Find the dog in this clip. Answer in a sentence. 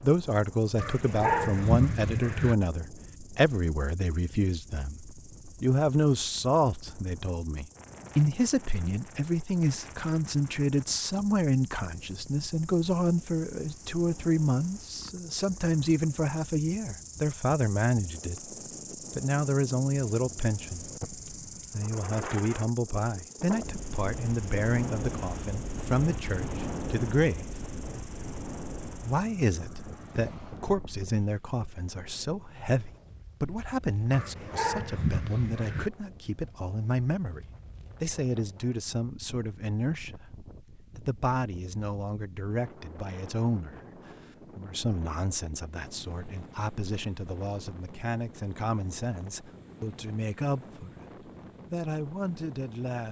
The dog can be heard from 0.8 to 2.5 s and from 34.1 to 35.9 s.